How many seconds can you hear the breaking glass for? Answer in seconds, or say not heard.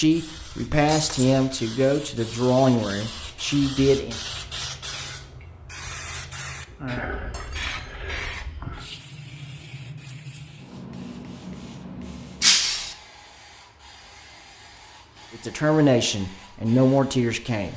2 s.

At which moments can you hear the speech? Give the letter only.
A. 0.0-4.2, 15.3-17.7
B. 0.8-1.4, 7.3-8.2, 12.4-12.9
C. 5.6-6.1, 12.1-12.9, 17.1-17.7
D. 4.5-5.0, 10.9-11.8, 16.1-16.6
A.